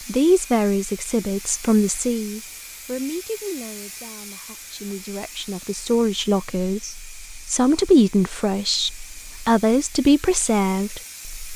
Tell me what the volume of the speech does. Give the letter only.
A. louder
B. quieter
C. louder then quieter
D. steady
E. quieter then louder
E.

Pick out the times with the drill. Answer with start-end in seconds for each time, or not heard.
not heard.